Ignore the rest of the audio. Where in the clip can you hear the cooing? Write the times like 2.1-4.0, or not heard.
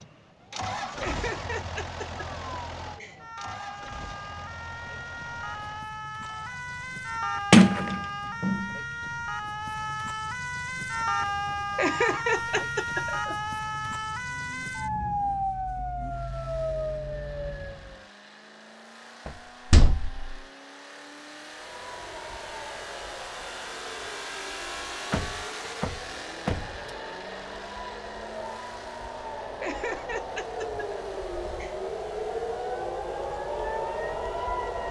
not heard.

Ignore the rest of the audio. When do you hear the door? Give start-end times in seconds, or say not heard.
7.5-8.7, 19.2-20.4, 25.1-26.9.